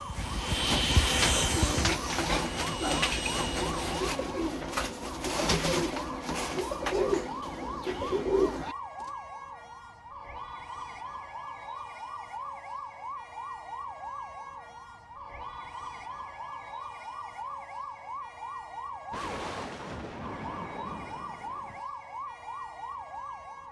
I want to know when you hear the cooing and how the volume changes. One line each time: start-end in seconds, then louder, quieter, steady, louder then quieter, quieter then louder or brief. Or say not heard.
0.1-9.1 steady.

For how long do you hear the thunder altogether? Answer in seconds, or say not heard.
3 s.